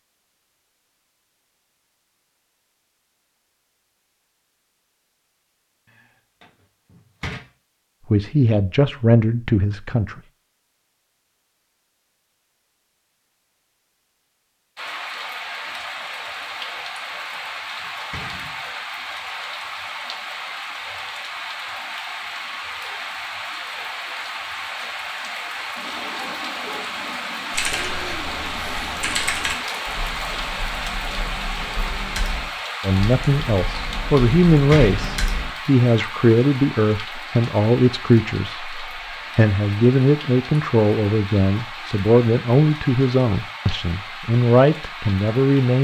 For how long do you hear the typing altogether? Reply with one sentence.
The typing can be heard for 8 seconds in total.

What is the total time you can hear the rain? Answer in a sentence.
You can hear the rain for 31 seconds altogether.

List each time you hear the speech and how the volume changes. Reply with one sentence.
You can hear the speech briefly from 8.1 to 10.2 s; and from 32.8 to 45.8 s, at a steady volume.